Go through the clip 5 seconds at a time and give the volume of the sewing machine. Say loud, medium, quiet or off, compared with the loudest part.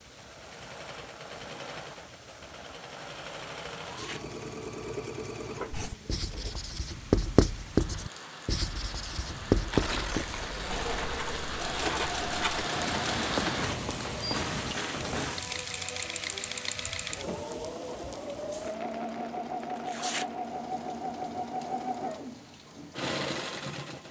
medium, medium, loud, loud, loud.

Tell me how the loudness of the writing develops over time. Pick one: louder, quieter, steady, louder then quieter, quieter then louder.
quieter.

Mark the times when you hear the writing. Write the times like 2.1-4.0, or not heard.
5.7-15.3.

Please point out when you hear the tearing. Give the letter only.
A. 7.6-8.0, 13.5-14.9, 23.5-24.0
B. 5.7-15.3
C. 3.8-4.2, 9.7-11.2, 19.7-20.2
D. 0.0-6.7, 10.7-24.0
C.